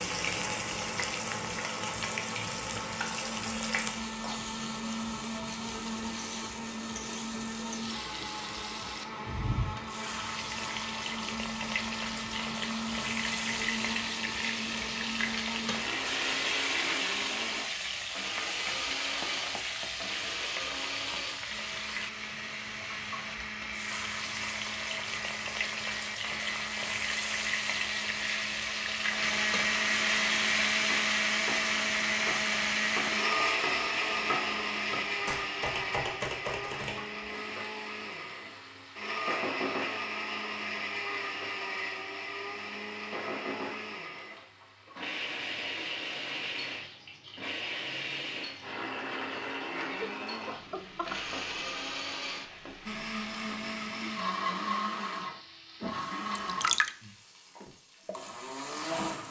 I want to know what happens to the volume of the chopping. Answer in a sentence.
The loudness of the chopping goes up.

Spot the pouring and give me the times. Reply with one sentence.
The pouring can be heard from 56.4 to 56.9 s.